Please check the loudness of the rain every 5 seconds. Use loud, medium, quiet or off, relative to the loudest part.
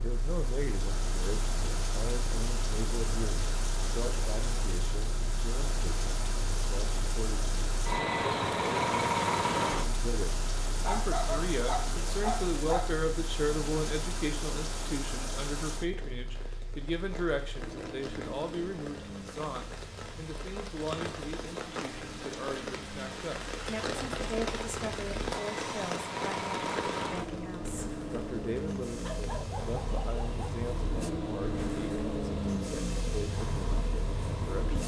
loud, loud, loud, medium, loud, loud, quiet.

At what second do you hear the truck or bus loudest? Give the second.
9 s.